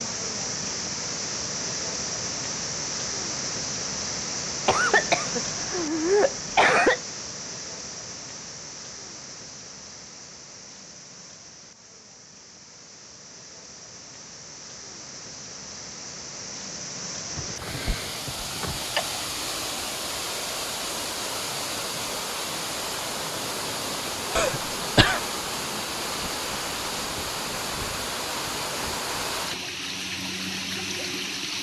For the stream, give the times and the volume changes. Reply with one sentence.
The stream can be heard from 0.0 to 31.5 s, getting quieter then louder.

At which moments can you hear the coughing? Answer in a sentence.
You can hear the coughing from 4.7 to 7.0 s, from 17.4 to 19.1 s and from 24.4 to 25.2 s.